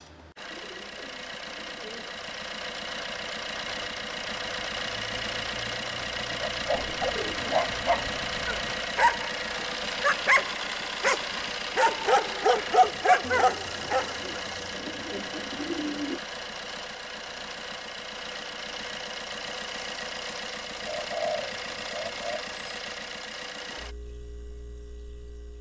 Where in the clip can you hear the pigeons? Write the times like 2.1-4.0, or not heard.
0.3-2.2, 6.7-8.8, 13.2-16.2, 20.8-22.4.